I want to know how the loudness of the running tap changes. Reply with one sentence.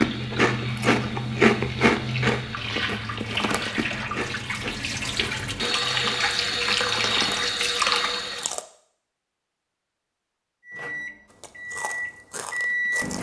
The volume of the running tap goes up.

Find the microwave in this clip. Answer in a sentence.
You can hear the microwave from 10.7 to 13.1 s.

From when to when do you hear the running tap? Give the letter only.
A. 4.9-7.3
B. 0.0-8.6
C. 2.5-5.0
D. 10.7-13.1
B.